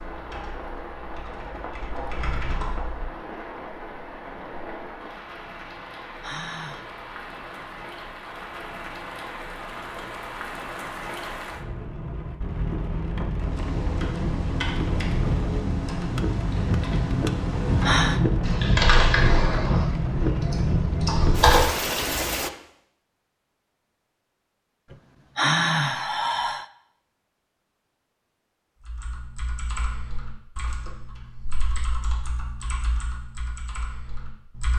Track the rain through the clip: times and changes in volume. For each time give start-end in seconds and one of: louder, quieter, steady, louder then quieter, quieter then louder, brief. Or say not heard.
0.0-22.5 louder.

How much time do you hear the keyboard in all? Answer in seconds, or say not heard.
17 s.